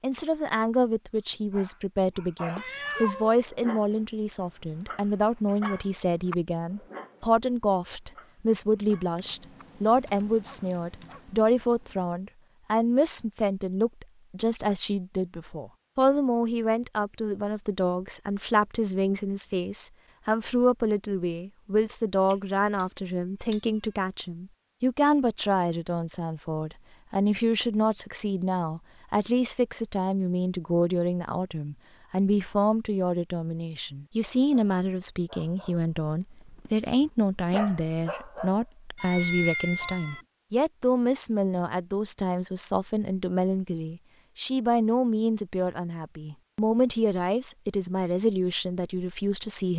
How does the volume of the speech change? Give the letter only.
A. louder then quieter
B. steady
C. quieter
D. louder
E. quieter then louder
B.